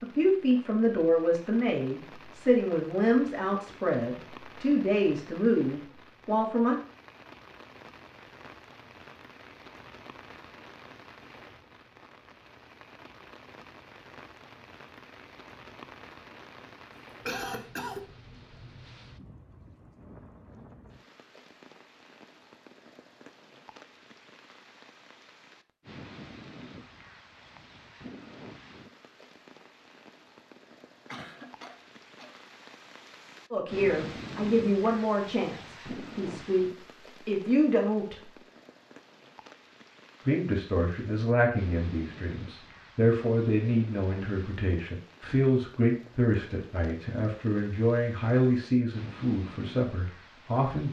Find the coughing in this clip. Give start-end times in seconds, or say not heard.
17.2-18.1, 31.1-32.4.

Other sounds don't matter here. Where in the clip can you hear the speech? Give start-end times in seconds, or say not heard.
0.0-6.8, 33.5-36.6, 37.2-38.4, 40.2-50.8.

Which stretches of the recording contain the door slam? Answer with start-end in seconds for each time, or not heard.
not heard.